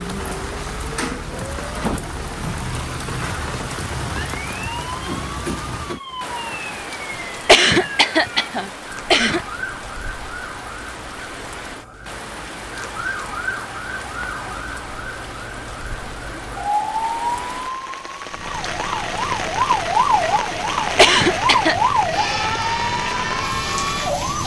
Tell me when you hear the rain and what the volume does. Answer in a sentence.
The rain can be heard from 0.0 to 24.4 s, getting quieter then louder.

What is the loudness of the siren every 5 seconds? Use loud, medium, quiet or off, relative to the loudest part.
quiet, medium, medium, loud, loud.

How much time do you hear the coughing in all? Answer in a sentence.
The coughing can be heard for 3 seconds in total.